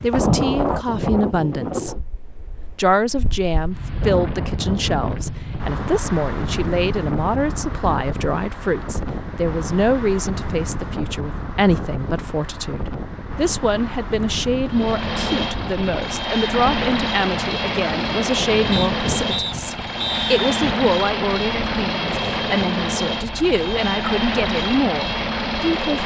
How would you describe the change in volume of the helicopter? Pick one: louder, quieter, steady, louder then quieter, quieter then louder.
steady.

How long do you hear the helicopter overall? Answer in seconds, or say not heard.
11 s.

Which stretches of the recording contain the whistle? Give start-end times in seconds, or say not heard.
18.7-20.7.